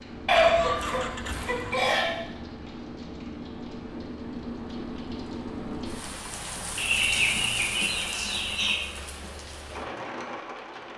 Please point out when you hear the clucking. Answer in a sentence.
You can hear the clucking from 0.2 to 2.1 s and from 6.8 to 8.8 s.